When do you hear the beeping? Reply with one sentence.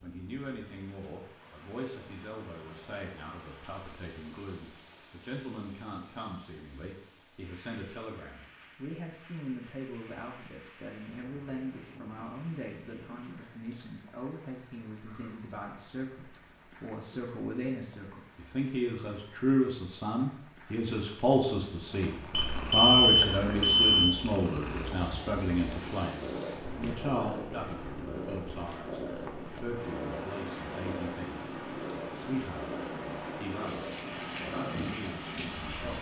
The beeping can be heard from 22.5 to 24.1 s.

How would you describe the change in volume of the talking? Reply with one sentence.
The loudness of the talking goes up, then down.